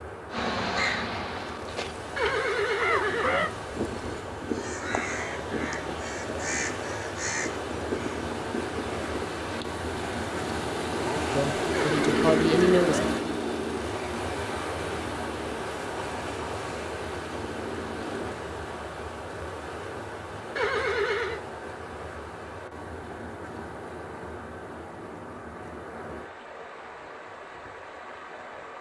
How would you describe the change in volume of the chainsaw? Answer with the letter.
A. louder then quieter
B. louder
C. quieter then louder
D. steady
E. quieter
A.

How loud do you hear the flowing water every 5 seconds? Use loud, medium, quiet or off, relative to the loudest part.
medium, loud, loud, loud, medium, medium.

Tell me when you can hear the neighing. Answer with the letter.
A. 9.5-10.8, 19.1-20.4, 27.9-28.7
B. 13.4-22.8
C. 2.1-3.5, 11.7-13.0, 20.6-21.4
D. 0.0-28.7
C.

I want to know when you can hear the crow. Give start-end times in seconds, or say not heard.
0.3-9.7.